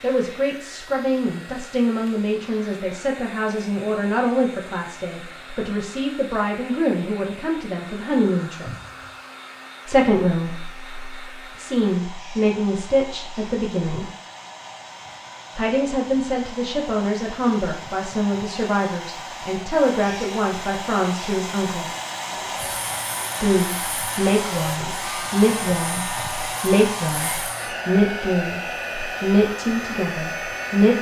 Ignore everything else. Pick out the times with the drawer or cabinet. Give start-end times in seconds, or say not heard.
8.7-9.2, 22.3-23.3.